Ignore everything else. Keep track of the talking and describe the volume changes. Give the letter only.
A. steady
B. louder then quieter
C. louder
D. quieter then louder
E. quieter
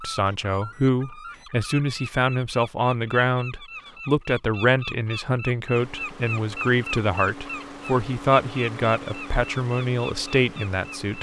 A.